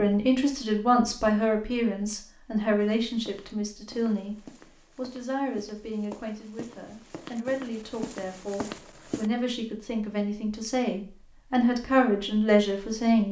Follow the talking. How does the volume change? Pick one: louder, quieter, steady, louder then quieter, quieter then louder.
quieter then louder.